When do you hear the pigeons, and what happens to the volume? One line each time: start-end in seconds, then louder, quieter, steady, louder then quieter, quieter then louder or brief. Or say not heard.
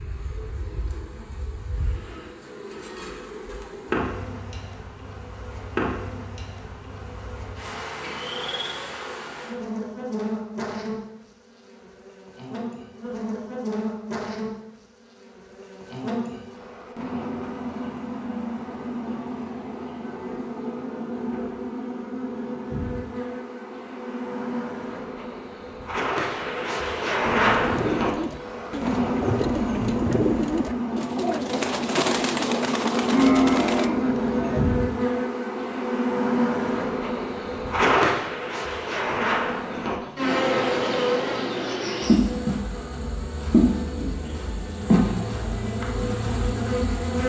27.4-33.9 steady.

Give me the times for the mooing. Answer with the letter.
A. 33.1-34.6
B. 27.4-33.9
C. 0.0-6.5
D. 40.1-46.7
A.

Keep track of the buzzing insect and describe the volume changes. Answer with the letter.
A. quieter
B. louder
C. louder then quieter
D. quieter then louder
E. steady
B.